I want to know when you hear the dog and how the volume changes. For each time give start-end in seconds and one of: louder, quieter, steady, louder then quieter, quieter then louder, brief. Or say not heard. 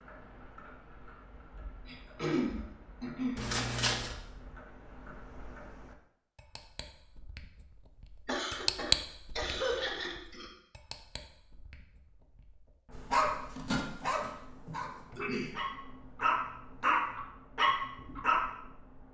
12.9-18.4 quieter then louder.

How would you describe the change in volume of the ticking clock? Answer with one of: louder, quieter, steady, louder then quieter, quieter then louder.
louder then quieter.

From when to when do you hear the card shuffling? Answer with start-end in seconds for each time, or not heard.
3.4-4.2.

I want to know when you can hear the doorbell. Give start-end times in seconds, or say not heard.
not heard.